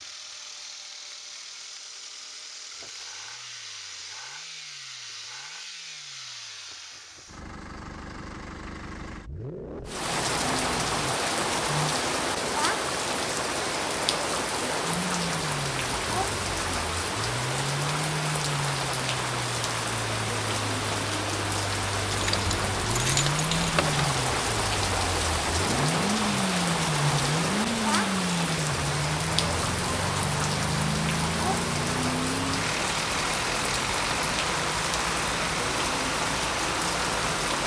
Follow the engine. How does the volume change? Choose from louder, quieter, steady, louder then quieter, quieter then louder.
louder.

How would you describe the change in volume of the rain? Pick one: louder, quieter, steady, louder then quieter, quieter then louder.
steady.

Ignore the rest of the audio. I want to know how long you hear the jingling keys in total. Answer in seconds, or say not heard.
2 s.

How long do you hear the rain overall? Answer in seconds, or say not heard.
28 s.